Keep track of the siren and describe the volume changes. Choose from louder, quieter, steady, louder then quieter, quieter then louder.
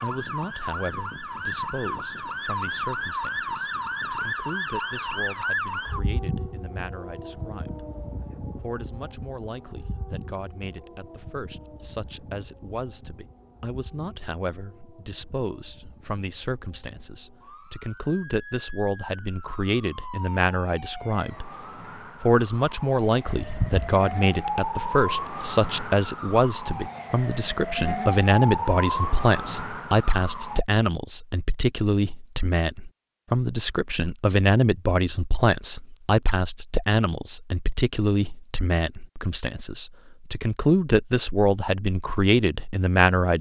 quieter then louder.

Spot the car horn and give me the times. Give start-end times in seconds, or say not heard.
23.4-23.9.